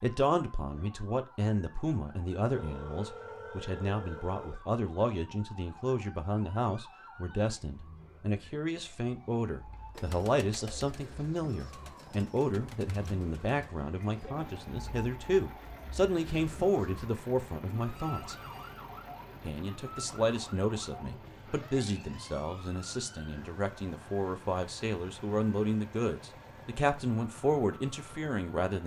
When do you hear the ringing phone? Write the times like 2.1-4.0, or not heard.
2.4-4.5, 17.9-18.8.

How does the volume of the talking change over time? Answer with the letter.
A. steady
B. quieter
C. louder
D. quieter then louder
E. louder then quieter
A.